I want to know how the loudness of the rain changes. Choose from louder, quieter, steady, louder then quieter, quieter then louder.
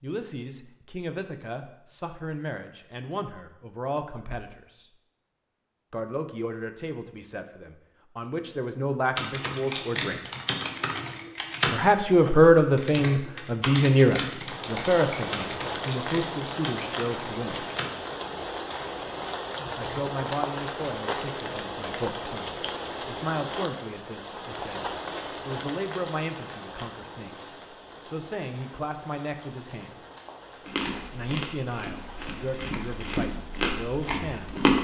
quieter.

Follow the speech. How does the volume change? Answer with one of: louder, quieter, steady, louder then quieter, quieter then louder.
louder then quieter.